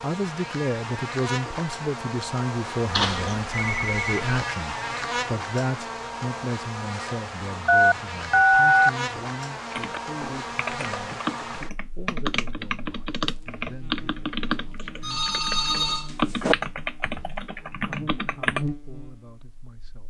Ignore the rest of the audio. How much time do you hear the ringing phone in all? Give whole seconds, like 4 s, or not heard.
4 s.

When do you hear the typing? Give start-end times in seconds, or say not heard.
9.7-18.6.